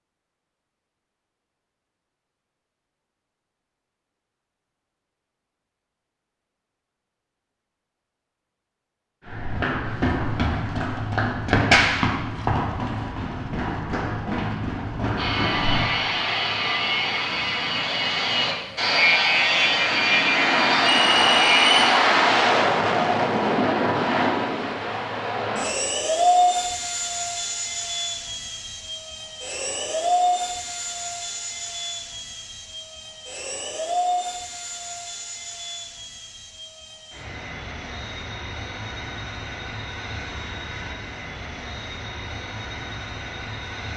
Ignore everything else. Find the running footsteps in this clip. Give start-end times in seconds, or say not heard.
9.2-15.8.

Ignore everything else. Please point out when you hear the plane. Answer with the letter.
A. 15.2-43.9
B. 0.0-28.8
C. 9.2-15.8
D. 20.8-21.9
A.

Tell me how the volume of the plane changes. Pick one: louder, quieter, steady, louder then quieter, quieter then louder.
quieter.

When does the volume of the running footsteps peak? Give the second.
12 s.